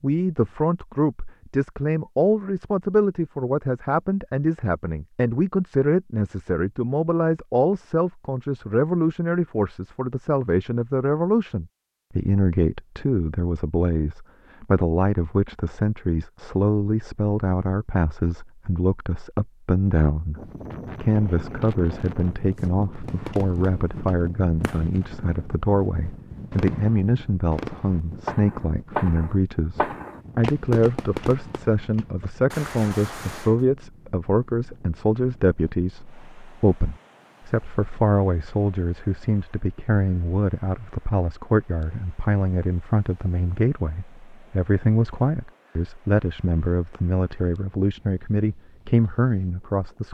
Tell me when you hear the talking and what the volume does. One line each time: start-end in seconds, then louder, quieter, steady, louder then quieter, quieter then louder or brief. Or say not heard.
0.0-50.0 steady.